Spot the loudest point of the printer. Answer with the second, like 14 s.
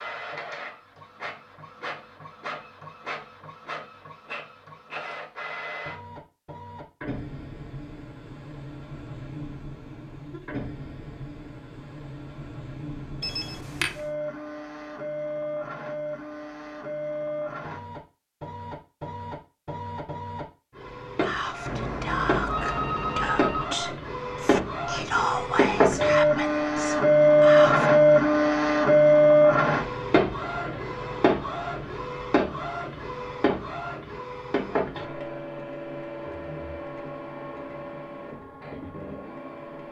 28 s.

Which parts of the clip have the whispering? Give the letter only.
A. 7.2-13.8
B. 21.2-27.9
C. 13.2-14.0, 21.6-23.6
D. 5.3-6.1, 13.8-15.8
B.